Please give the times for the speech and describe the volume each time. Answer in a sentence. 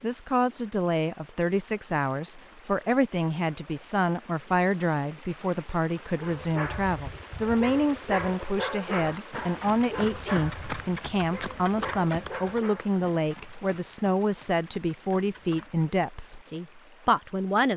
You can hear the speech from 0.0 to 17.7 s, at a steady volume.